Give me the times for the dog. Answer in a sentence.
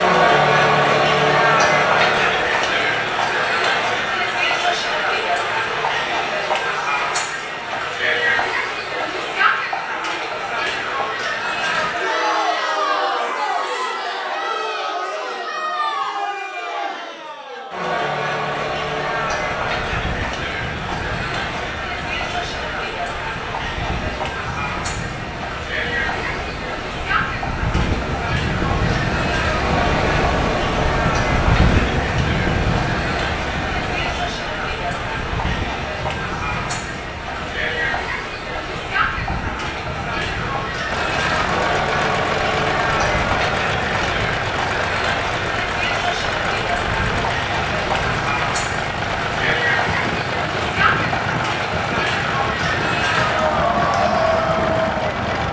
The dog can't be heard in this clip.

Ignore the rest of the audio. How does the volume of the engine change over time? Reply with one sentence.
The volume of the engine stays about the same.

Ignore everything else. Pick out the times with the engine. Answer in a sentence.
The engine can be heard from 40.9 to 55.4 s.